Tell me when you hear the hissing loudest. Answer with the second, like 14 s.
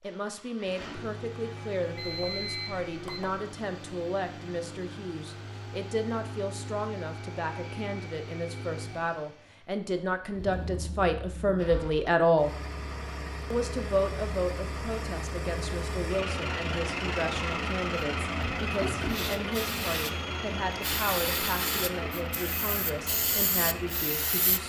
21 s.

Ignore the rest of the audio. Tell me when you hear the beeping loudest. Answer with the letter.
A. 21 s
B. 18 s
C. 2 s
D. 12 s
C.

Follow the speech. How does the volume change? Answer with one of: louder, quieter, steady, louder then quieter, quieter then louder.
louder then quieter.